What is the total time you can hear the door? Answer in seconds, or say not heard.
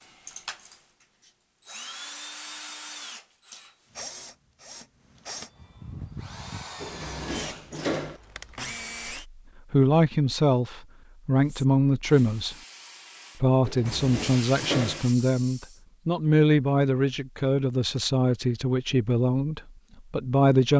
3 s.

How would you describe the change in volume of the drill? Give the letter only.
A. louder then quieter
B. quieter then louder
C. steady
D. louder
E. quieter
C.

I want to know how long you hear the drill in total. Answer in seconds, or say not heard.
9 s.